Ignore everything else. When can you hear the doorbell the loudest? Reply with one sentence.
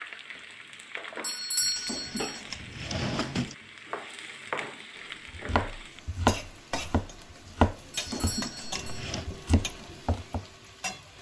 The volume of the doorbell peaks at 2 seconds.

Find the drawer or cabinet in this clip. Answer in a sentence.
You can hear the drawer or cabinet from 1.8 to 3.5 s and from 8.0 to 9.2 s.